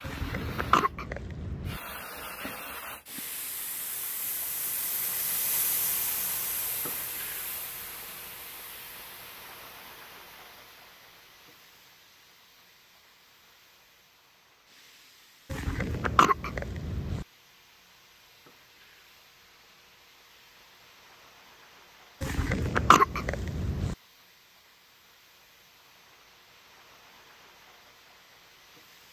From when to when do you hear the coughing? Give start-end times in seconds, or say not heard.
0.0-1.8, 15.5-17.2, 22.2-23.9.